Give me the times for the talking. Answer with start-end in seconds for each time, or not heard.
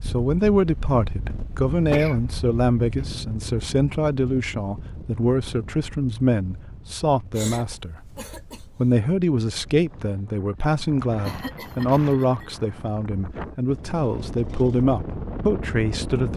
0.0-16.3.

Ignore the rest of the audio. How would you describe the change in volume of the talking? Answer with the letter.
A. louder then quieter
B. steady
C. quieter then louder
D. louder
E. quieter
B.